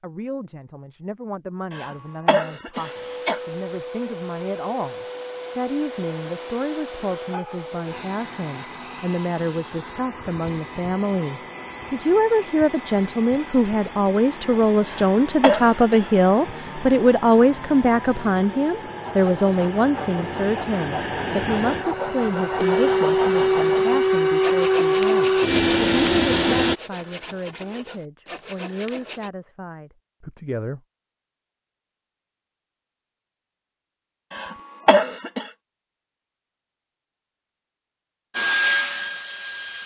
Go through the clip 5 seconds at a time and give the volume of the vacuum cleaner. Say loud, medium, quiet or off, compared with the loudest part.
quiet, quiet, quiet, quiet, loud, loud, off, medium.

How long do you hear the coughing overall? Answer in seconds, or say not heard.
4 s.